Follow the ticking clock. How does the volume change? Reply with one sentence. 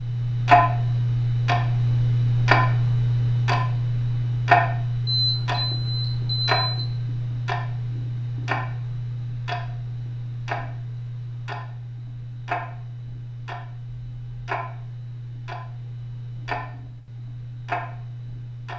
The loudness of the ticking clock goes down.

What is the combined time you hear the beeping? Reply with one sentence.
The beeping can be heard for 2 seconds in total.